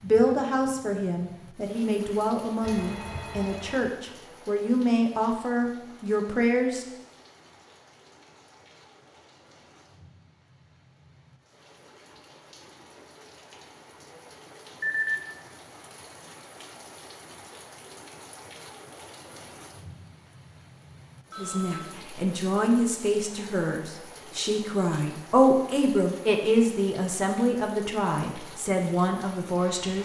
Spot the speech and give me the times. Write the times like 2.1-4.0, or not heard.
0.0-6.8, 21.4-30.0.